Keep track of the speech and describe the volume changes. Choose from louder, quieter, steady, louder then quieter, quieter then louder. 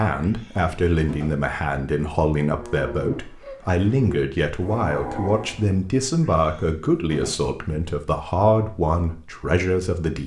steady.